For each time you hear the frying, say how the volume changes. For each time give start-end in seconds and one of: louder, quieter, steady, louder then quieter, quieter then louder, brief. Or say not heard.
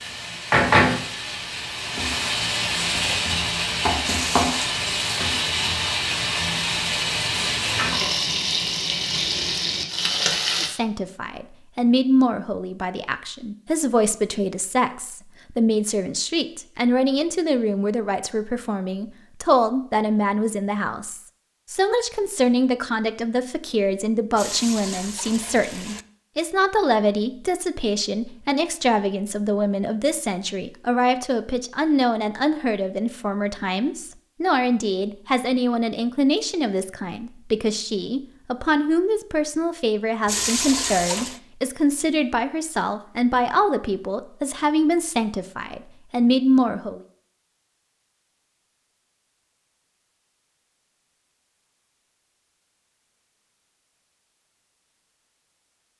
0.0-10.7 steady.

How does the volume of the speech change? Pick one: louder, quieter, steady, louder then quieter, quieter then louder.
steady.